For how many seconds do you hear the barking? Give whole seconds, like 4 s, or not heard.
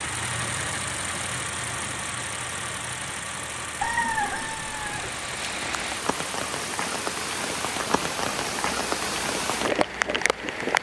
not heard.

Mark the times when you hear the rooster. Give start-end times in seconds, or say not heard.
3.8-5.1.